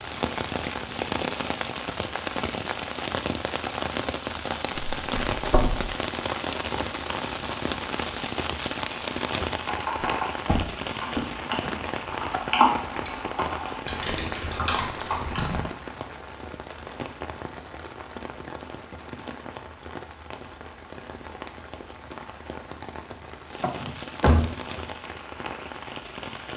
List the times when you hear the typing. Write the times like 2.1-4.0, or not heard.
9.7-15.6.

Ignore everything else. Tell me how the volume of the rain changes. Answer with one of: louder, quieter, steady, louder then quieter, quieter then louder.
quieter.